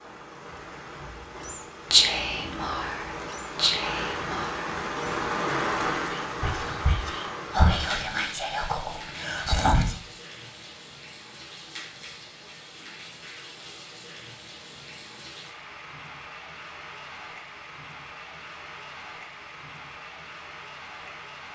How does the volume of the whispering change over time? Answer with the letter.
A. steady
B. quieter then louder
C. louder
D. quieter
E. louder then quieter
B.